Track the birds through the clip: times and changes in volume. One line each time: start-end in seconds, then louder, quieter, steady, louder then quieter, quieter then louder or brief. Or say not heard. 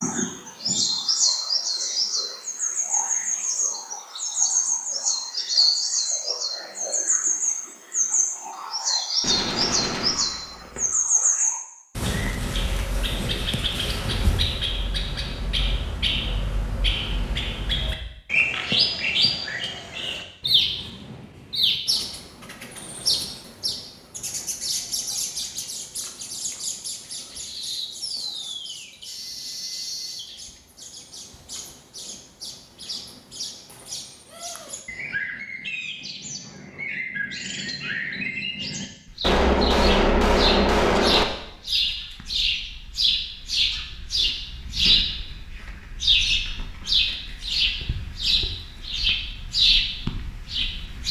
0.0-51.0 quieter then louder.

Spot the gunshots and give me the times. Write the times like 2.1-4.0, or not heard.
9.2-10.8, 39.2-41.2.